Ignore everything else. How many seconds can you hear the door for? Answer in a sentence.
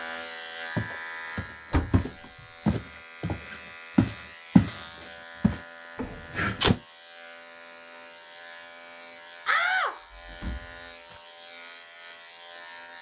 The door can be heard for 3 seconds in total.